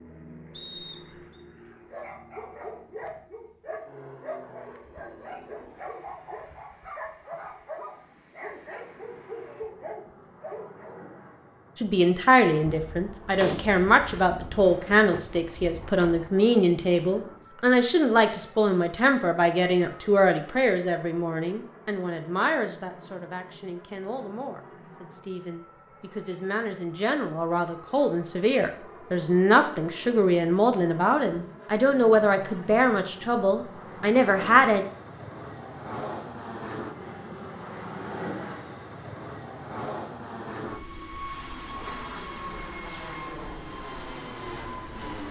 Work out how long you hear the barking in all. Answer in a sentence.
The barking can be heard for 9 seconds in total.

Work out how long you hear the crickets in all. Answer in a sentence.
The crickets can't be heard in this clip.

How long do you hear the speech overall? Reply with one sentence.
The speech can be heard for 23 seconds in total.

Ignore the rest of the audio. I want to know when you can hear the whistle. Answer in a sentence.
The whistle can be heard from 0.5 to 1.4 s.